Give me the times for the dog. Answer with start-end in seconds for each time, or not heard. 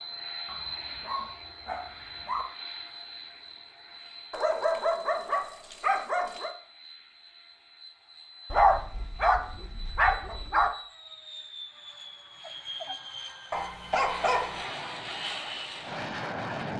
0.5-2.5, 4.3-6.5, 8.5-10.7, 13.5-14.7.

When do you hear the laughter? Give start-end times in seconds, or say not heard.
not heard.